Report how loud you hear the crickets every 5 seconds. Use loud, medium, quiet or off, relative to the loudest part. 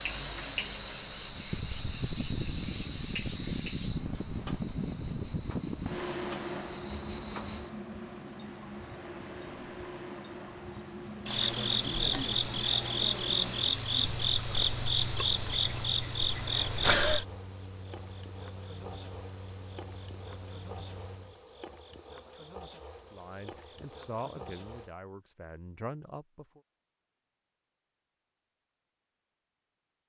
medium, loud, loud, loud, loud, off.